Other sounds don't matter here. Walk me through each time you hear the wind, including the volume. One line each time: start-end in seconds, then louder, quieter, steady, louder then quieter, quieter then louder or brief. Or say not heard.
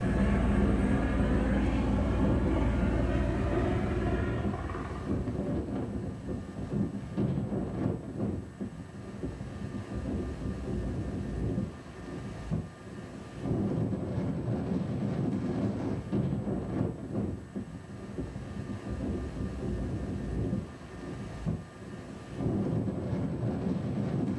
0.0-24.3 steady.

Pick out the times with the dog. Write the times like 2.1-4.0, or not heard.
not heard.